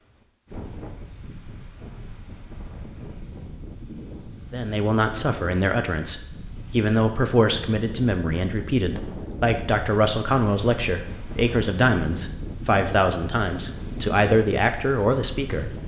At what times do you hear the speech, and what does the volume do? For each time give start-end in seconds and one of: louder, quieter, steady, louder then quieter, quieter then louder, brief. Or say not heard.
4.5-15.8 steady.